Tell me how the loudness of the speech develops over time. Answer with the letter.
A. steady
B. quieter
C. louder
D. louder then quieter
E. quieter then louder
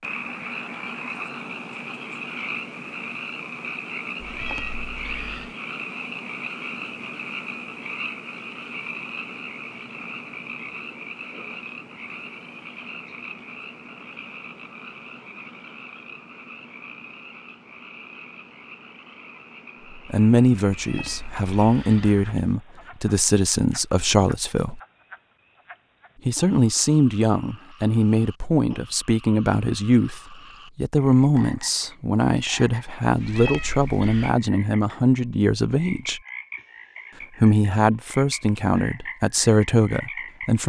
A.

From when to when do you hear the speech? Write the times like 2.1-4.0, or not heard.
19.9-24.8, 26.2-36.2, 37.4-40.6.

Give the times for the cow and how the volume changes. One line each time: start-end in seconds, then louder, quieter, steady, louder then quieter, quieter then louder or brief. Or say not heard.
not heard.